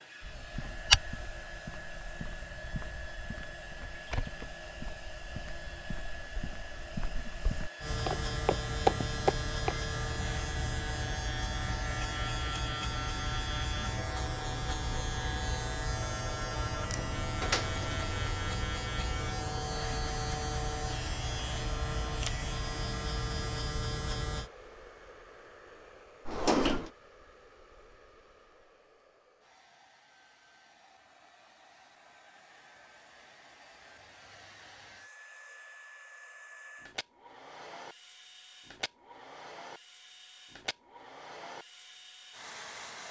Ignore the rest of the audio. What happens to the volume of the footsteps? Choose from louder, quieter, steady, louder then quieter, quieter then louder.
quieter then louder.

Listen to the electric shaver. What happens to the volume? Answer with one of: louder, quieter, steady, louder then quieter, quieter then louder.
steady.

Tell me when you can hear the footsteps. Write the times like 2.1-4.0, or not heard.
0.2-9.8.